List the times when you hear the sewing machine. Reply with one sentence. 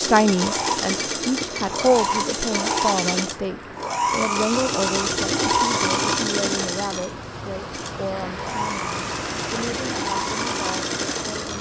The sewing machine can be heard from 0.0 to 11.5 s.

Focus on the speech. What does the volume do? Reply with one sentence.
The volume of the speech goes down.